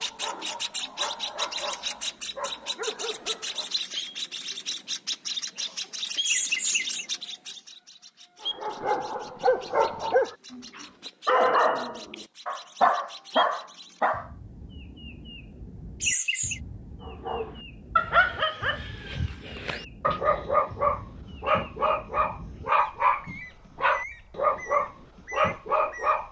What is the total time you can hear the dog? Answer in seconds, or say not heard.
19 s.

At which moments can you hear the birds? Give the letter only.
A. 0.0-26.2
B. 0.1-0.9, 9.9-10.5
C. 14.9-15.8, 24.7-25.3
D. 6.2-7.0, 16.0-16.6
A.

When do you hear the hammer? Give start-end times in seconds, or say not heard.
not heard.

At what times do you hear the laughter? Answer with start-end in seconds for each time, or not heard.
6.2-7.0, 16.0-16.6.